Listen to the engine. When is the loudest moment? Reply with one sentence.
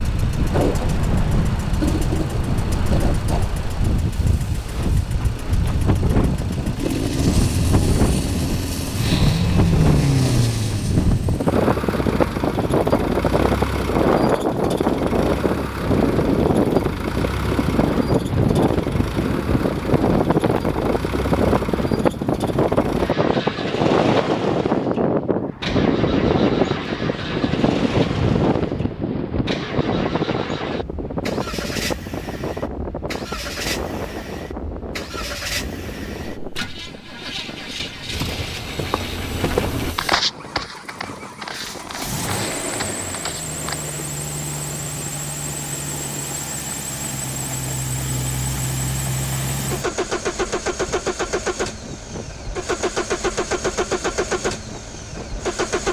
The volume of the engine peaks at 10 seconds.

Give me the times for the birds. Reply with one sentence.
The birds can't be heard in this clip.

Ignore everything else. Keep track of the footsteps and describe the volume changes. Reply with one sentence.
The volume of the footsteps goes up, then down.